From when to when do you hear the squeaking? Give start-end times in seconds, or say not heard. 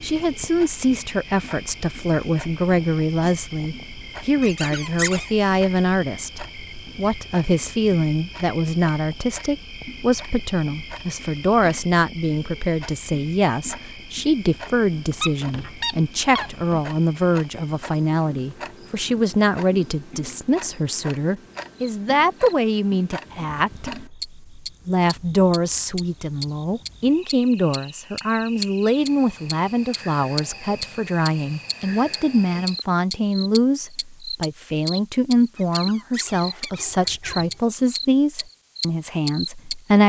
4.4-5.3, 14.4-16.9, 35.5-37.6.